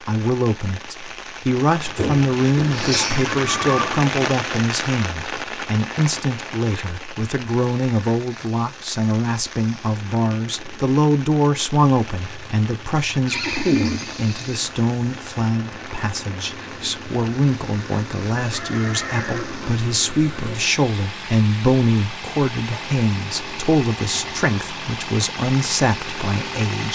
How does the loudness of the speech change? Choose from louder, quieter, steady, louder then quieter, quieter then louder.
steady.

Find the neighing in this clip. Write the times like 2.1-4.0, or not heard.
1.9-4.0, 13.2-14.7, 18.5-19.8.